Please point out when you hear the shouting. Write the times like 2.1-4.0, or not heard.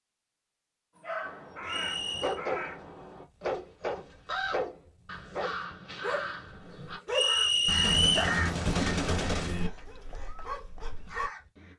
not heard.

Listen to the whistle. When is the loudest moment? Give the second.
8 s.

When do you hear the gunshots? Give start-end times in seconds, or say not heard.
7.7-9.7.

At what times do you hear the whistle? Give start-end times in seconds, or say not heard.
1.6-2.4, 7.1-8.3.